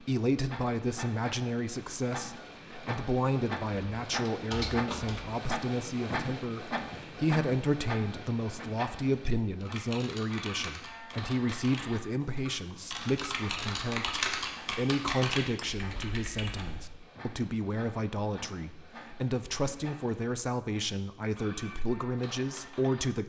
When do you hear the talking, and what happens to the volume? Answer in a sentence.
You can hear the talking from 0.0 to 23.2 s, at a steady volume.